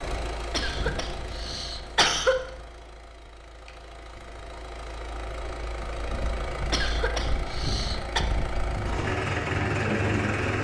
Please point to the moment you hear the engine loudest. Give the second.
10 s.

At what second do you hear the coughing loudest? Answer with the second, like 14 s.
2 s.